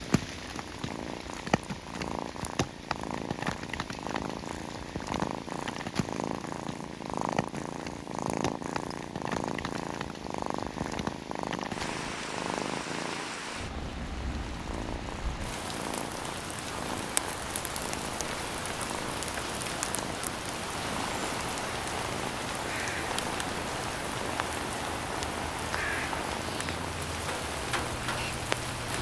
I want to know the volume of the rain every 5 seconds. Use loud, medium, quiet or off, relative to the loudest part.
medium, medium, medium, loud, loud, loud.